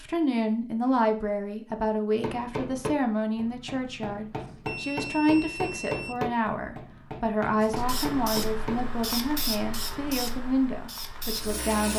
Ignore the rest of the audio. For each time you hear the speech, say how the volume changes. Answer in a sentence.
The speech can be heard from 0.0 to 11.9 s, at a steady volume.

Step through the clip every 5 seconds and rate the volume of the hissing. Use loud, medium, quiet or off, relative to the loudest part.
off, loud, loud.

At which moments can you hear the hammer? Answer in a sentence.
You can hear the hammer from 2.2 to 8.8 s.